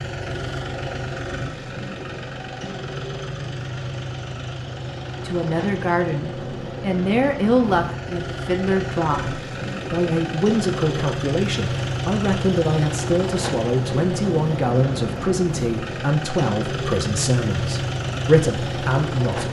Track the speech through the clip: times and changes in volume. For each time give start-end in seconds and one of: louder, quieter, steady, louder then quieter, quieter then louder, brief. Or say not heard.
5.2-19.4 steady.